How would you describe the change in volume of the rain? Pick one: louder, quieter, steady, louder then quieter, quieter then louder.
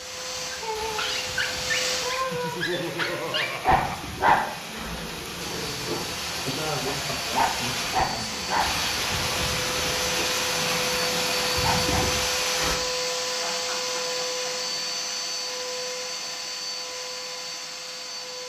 louder.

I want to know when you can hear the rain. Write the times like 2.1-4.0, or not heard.
0.0-12.8.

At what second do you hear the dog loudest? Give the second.
4 s.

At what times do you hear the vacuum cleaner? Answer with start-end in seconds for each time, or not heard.
0.0-2.2, 5.3-18.4.